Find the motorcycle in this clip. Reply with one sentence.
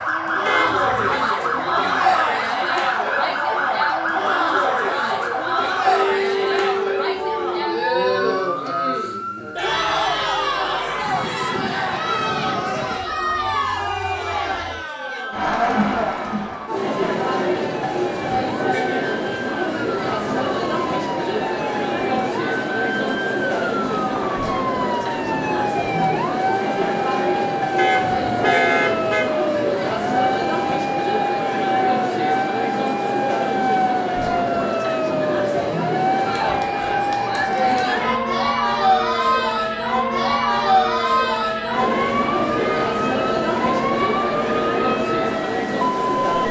You can't hear the motorcycle here.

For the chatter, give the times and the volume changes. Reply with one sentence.
The chatter can be heard from 0.1 to 46.4 s, at a steady volume.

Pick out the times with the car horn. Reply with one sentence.
You can hear the car horn from 0.5 to 1.2 s, from 27.8 to 29.4 s and from 41.9 to 42.9 s.